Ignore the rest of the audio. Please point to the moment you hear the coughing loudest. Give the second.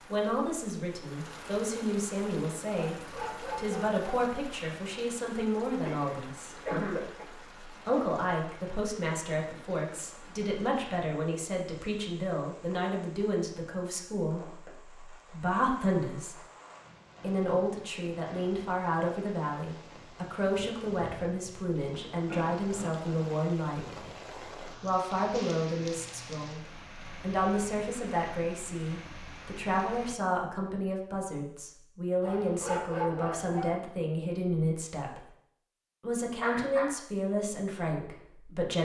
7 s.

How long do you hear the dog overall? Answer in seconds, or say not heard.
3 s.